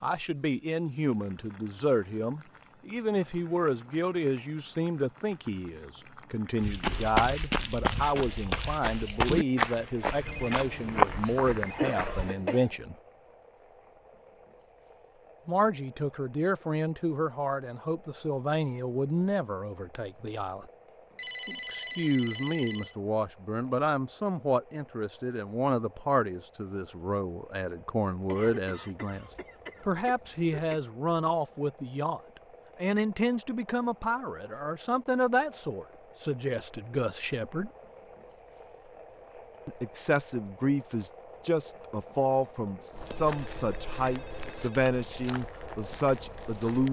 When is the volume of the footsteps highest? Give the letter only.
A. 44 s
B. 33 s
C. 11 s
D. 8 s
C.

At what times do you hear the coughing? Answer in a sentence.
The coughing can be heard from 11.8 to 12.8 s and from 28.2 to 30.8 s.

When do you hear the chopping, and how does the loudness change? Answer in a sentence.
You can't hear the chopping here.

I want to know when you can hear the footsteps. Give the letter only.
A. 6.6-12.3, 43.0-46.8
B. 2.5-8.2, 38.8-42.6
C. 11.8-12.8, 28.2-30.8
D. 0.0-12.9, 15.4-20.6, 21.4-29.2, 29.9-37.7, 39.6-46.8
A.